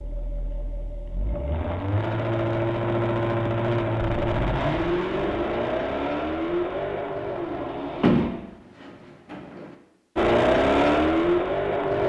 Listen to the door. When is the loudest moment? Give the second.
8 s.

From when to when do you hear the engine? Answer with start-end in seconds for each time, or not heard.
0.0-8.3, 10.2-12.0.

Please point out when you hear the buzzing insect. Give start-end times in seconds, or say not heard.
not heard.